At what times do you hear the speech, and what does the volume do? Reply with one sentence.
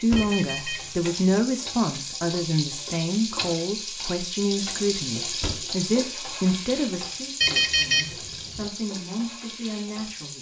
You can hear the speech from 0.0 to 10.3 s, getting quieter.